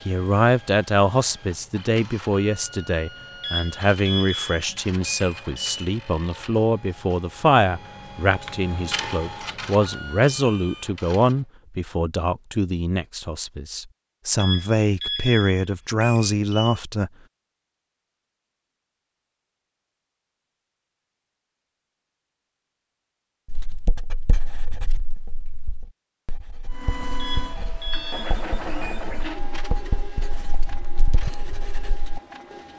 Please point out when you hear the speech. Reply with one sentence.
The speech can be heard from 0.1 to 17.1 s.